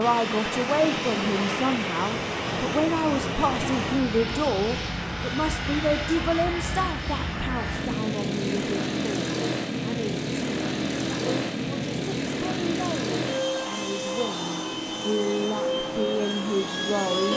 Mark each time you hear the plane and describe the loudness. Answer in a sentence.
The plane can be heard from 0.0 to 17.3 s, at a steady volume.